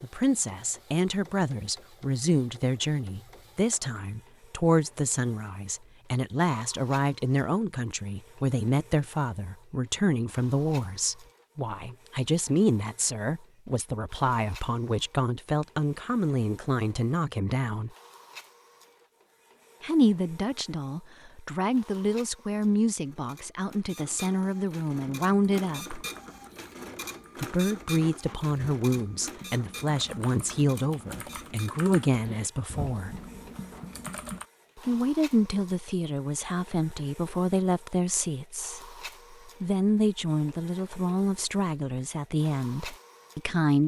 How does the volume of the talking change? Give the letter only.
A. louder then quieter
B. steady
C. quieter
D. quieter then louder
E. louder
B.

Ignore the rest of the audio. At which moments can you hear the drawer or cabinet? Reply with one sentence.
You can't hear the drawer or cabinet here.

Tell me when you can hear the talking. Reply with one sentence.
You can hear the talking from 0.0 to 17.9 s, from 19.8 to 26.1 s, from 27.4 to 33.1 s and from 34.8 to 43.8 s.